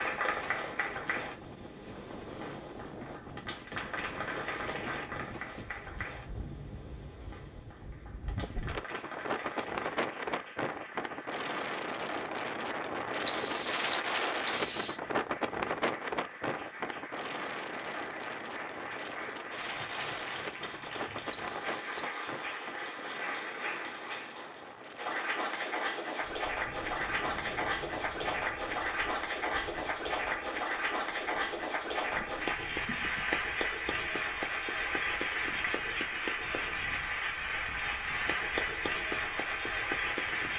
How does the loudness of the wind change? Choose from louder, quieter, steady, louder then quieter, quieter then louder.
louder then quieter.